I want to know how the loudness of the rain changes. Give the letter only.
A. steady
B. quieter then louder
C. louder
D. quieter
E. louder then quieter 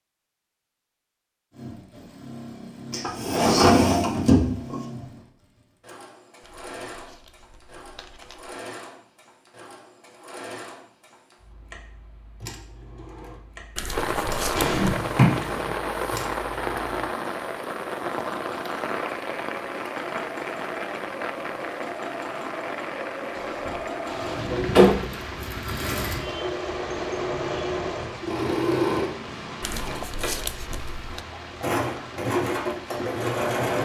D.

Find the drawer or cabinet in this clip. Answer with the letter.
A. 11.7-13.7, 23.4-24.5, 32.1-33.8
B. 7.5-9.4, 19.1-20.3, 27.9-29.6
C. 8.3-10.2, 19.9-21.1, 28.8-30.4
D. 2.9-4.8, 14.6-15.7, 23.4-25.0
D.